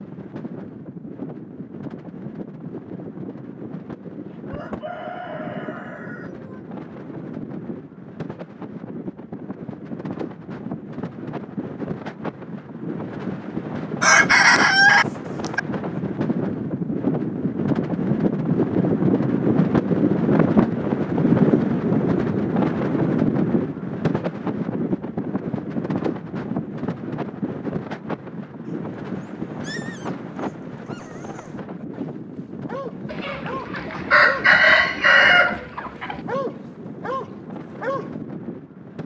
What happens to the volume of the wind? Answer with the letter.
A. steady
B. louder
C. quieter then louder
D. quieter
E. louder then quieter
E.